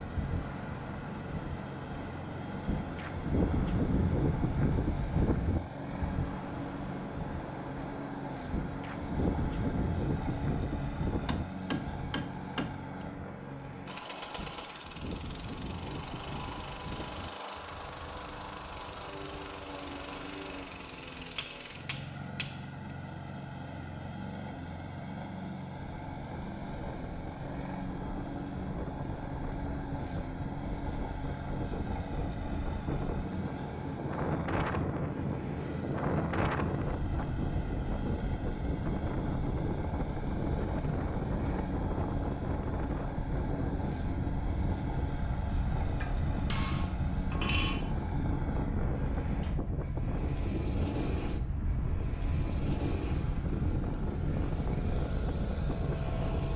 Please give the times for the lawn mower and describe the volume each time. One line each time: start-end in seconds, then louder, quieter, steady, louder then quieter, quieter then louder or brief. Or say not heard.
0.0-56.5 steady.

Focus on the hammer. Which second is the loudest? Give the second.
47 s.